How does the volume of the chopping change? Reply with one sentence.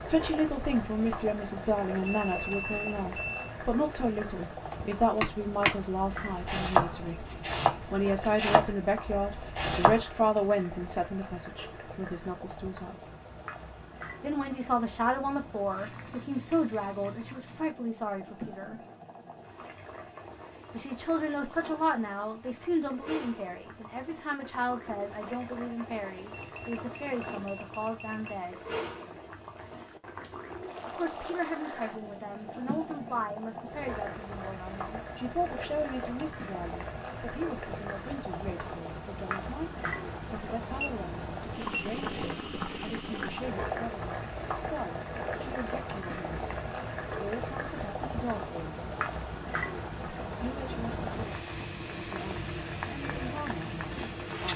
The loudness of the chopping goes down.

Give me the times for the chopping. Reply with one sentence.
The chopping can be heard from 4.7 to 10.1 s.